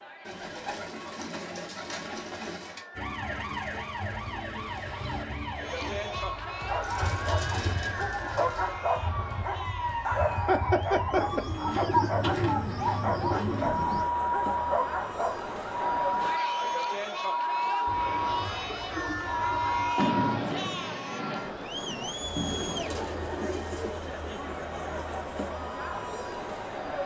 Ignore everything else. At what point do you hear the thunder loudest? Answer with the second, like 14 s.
20 s.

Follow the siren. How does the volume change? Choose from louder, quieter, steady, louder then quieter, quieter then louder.
louder.